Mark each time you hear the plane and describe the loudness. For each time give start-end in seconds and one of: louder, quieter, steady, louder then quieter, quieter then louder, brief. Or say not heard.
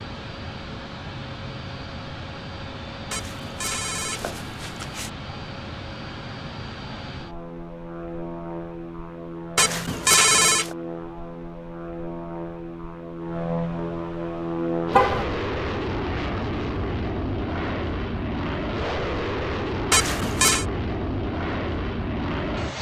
0.0-22.7 louder.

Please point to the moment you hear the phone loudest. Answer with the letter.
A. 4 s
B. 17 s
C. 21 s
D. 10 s
D.